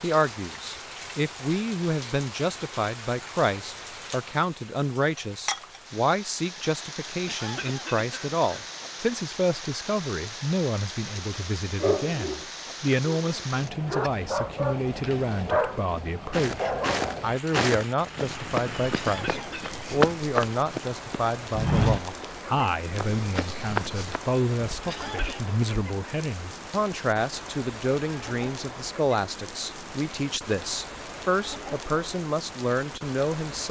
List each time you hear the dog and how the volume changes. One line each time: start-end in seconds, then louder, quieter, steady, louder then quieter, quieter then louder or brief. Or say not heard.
11.8-17.2 louder.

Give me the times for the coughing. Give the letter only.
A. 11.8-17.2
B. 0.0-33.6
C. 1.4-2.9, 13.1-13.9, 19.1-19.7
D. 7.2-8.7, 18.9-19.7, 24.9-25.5
D.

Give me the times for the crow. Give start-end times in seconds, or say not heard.
not heard.